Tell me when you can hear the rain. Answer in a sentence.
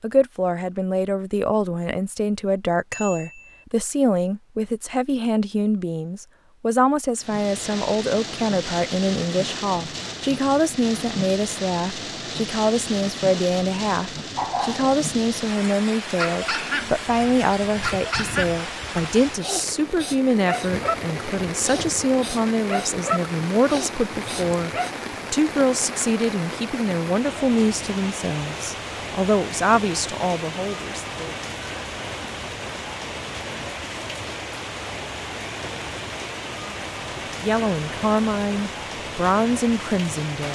The rain can be heard from 7.2 to 40.4 s.